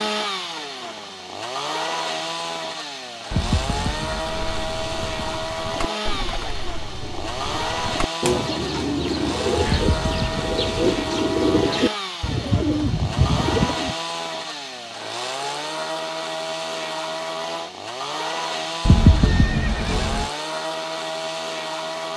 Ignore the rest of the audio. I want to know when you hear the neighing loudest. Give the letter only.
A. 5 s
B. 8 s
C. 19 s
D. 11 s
C.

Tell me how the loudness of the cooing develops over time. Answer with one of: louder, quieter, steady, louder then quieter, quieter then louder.
louder.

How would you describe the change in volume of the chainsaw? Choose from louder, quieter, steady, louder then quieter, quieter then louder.
steady.